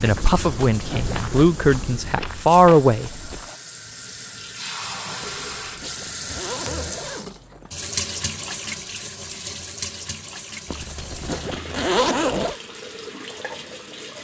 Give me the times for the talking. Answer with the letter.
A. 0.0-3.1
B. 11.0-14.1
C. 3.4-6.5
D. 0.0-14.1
A.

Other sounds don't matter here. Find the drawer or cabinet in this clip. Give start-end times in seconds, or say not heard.
not heard.